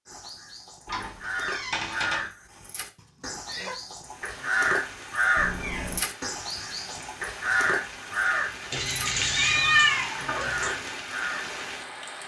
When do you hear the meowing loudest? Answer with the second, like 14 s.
10 s.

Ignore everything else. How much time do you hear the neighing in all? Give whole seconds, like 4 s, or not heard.
2 s.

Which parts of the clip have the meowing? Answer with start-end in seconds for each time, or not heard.
0.8-2.3, 5.3-6.0, 8.7-10.8.